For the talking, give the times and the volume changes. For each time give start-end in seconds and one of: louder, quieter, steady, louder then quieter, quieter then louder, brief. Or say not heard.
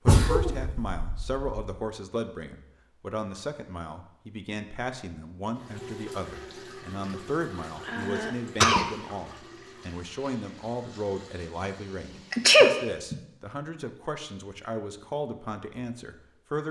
0.0-16.6 steady.